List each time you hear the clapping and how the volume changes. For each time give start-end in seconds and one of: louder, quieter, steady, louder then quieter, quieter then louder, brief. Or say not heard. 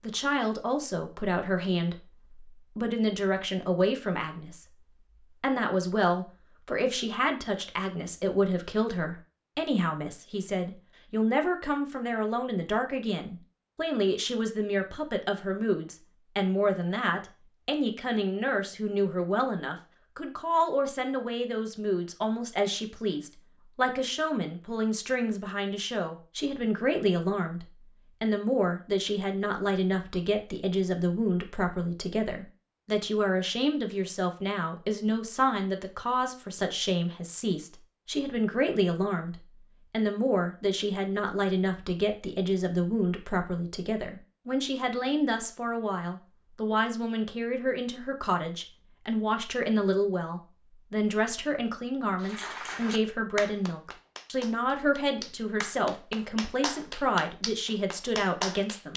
52.2-58.9 quieter then louder.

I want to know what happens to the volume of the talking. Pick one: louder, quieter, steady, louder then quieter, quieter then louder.
steady.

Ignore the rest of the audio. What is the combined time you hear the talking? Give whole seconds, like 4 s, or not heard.
59 s.